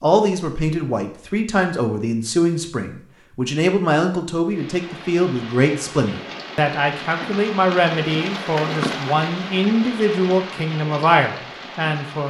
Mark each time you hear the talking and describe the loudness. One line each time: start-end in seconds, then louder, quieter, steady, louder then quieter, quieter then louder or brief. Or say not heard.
0.0-12.2 steady.